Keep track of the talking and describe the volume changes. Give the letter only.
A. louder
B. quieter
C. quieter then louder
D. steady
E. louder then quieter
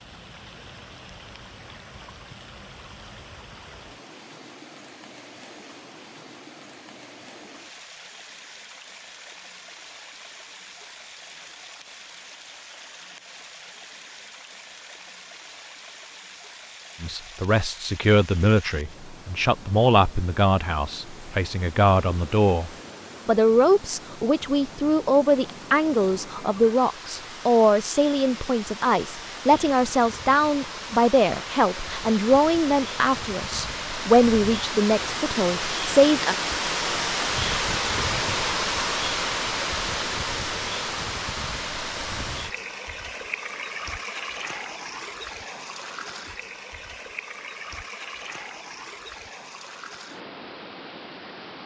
D.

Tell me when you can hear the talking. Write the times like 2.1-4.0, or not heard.
17.0-36.4.